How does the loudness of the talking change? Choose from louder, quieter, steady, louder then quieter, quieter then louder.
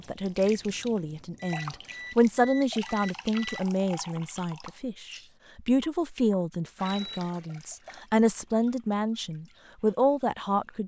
steady.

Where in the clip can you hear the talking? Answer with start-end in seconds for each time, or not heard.
0.0-10.8.